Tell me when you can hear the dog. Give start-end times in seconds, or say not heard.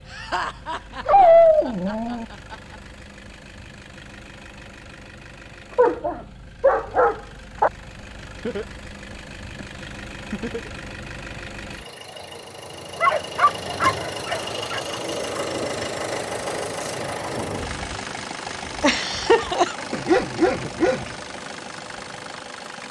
1.1-2.2, 5.8-7.7, 13.0-14.9, 19.9-21.1.